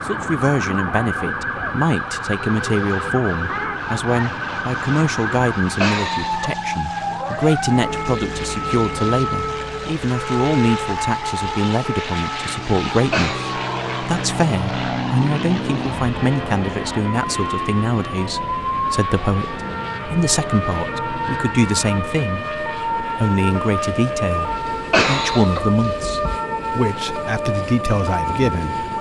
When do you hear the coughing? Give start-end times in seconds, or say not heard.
5.6-6.6, 12.9-13.4, 24.5-26.4.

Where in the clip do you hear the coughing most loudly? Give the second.
25 s.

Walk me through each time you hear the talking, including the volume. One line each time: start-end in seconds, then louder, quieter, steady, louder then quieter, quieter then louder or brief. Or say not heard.
0.0-28.9 steady.